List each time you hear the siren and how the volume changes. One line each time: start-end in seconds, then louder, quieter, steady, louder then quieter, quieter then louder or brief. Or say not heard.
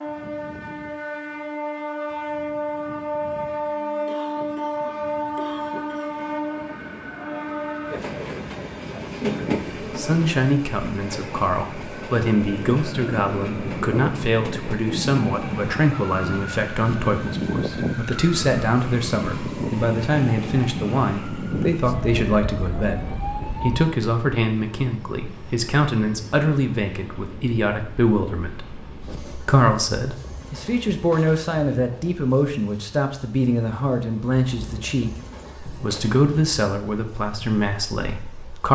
11.8-23.9 steady.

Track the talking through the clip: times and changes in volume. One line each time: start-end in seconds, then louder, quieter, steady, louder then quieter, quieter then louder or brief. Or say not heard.
9.8-38.6 steady.